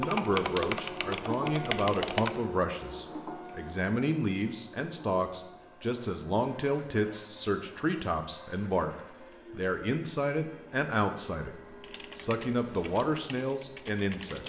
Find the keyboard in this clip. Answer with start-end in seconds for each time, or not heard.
0.0-2.3, 11.8-14.4.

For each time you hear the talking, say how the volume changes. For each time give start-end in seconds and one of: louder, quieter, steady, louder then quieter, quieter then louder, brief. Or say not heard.
0.0-11.6 steady
12.2-14.4 brief.